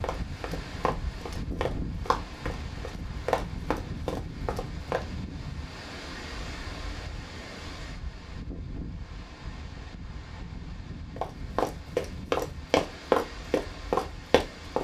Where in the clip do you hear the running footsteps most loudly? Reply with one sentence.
The volume of the running footsteps peaks at 13 seconds.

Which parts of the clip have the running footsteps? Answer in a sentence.
The running footsteps can be heard from 0.0 to 5.0 s and from 11.2 to 14.8 s.